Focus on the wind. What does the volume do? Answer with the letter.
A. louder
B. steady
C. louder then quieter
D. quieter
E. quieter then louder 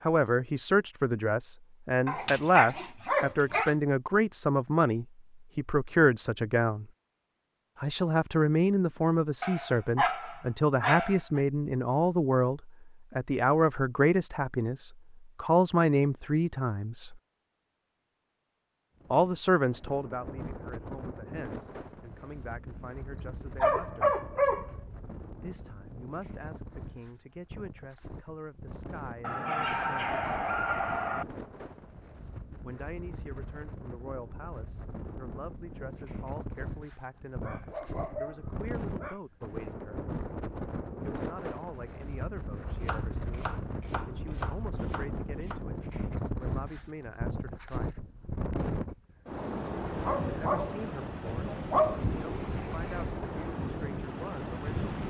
A.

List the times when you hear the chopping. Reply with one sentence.
The chopping can be heard from 42.8 to 45.6 s.